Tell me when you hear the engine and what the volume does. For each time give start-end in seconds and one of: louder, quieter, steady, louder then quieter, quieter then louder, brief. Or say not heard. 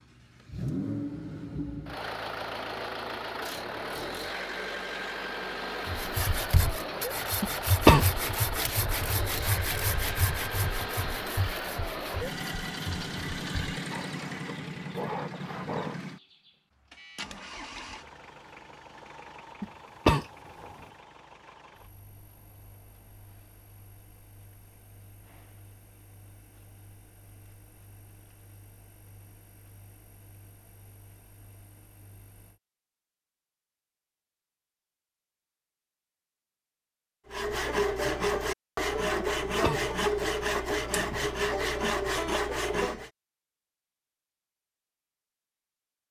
0.0-32.6 quieter.